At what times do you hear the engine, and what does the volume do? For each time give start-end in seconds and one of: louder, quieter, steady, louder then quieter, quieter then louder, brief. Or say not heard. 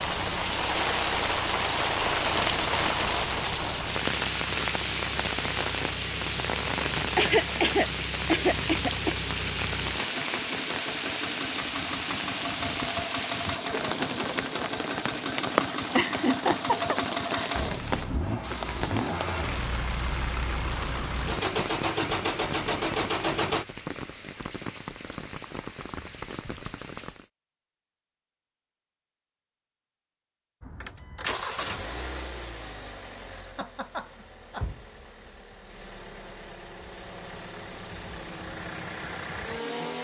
0.0-23.6 louder
30.6-39.9 quieter then louder.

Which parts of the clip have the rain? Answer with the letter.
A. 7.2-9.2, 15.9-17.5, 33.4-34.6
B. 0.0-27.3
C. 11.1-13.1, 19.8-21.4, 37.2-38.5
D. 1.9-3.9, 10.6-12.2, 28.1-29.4
B.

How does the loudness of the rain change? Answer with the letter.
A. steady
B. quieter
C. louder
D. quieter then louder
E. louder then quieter
B.